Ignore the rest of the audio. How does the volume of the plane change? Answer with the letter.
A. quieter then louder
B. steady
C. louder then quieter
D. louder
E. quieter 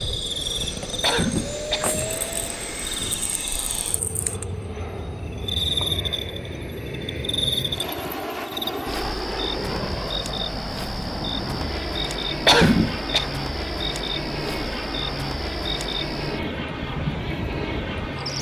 B.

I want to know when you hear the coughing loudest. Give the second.
13 s.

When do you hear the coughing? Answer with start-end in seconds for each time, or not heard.
1.0-2.2, 12.4-13.3.